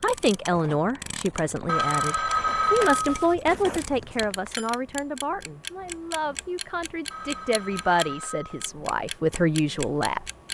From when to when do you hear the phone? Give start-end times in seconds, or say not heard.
1.6-3.4, 7.1-8.7.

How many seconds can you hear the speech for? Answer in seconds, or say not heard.
10 s.